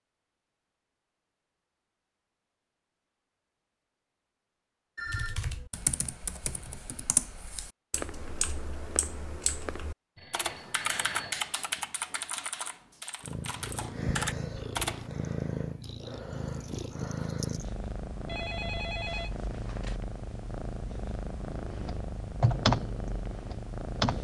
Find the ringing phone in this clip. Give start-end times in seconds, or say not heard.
5.0-5.5, 10.2-11.4, 18.2-20.0.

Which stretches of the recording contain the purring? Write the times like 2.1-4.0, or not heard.
13.2-24.1.